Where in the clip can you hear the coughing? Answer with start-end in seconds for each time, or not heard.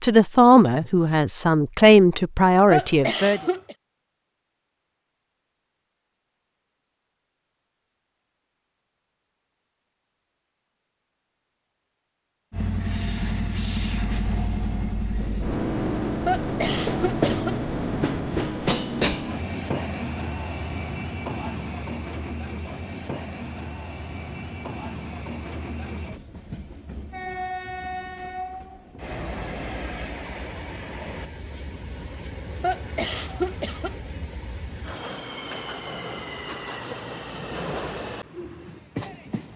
2.7-3.8, 16.2-17.6, 32.6-34.0.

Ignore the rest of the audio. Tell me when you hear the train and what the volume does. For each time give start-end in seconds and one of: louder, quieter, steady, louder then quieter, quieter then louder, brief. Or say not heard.
12.5-39.5 quieter.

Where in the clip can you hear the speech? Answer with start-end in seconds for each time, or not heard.
0.0-3.4.